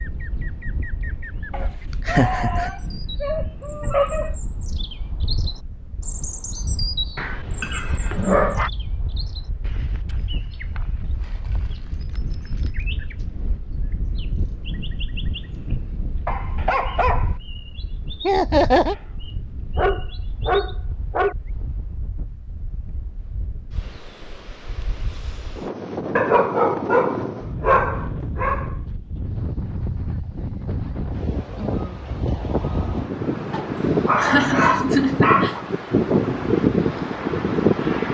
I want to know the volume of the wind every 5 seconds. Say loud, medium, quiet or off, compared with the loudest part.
quiet, quiet, quiet, quiet, quiet, medium, medium, loud.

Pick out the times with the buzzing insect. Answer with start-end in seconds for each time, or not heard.
not heard.